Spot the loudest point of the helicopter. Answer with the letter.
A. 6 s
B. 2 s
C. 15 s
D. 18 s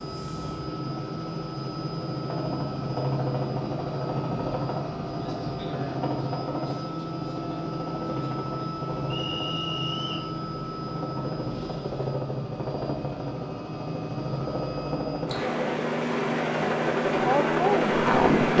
D.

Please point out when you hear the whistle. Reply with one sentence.
You can hear the whistle from 9.1 to 10.3 s.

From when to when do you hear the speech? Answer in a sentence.
You can hear the speech from 17.1 to 18.5 s.